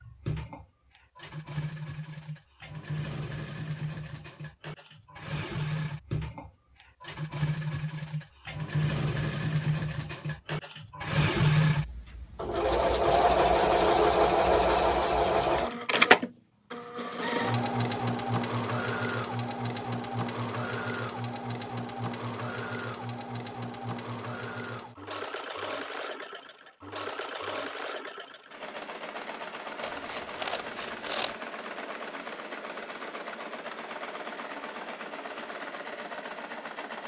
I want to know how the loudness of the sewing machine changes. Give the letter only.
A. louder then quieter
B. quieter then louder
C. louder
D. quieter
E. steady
A.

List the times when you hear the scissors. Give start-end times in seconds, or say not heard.
29.8-31.4.